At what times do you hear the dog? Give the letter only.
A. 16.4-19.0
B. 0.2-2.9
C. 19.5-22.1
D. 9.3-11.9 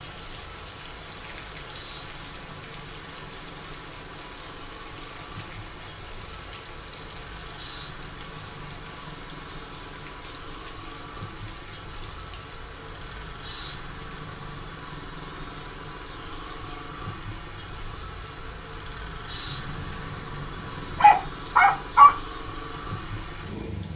C.